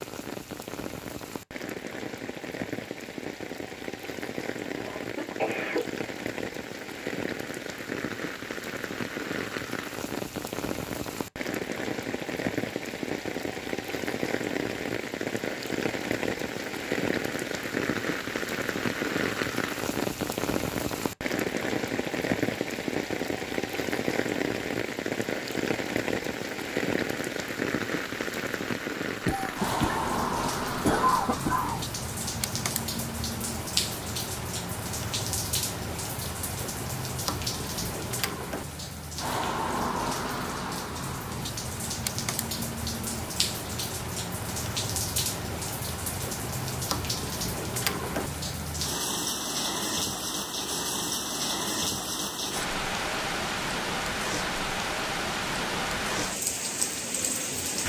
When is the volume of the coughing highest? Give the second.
31 s.